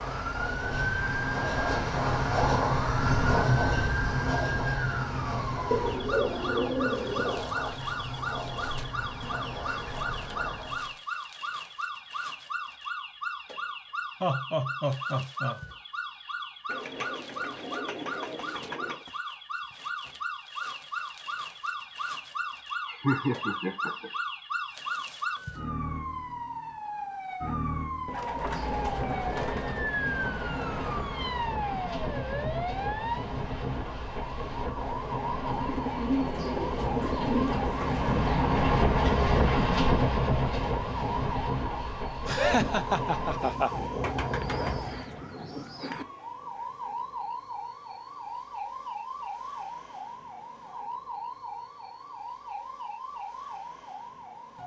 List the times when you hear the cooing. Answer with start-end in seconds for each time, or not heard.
5.7-7.5, 16.6-19.0, 28.1-30.9, 35.6-38.4, 44.0-46.0.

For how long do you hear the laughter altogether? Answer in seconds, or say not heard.
4 s.